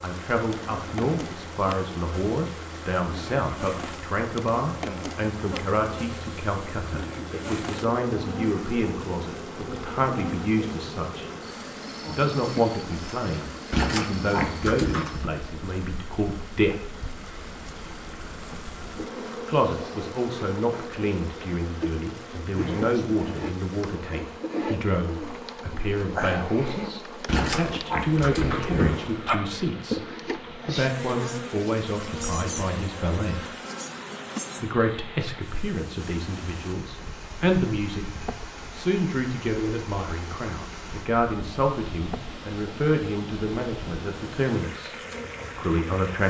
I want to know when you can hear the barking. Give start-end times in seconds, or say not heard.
13.7-15.3, 27.2-29.4.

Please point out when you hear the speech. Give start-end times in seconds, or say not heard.
0.0-11.3, 12.1-17.0, 19.4-33.5, 34.6-38.0, 38.8-45.0, 45.5-46.2.